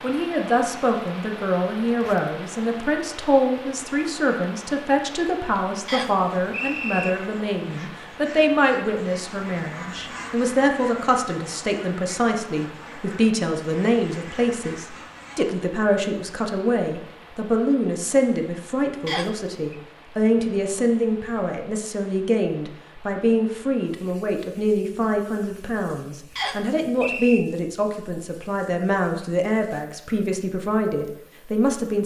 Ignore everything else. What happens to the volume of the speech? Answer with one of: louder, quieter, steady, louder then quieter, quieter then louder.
steady.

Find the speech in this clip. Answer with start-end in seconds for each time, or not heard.
0.0-32.0.